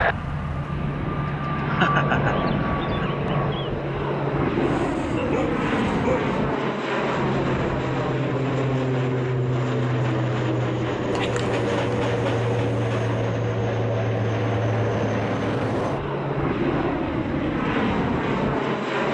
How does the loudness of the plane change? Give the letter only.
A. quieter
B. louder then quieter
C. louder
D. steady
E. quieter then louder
D.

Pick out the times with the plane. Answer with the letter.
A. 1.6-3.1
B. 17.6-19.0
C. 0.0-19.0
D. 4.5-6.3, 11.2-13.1
C.